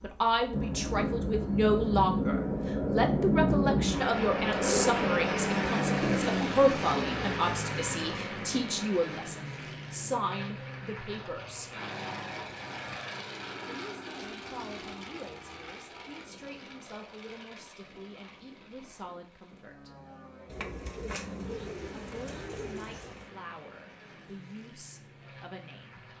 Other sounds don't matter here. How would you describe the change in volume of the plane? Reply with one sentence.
The volume of the plane goes down.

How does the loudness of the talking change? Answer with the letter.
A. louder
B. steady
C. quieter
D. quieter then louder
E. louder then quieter
C.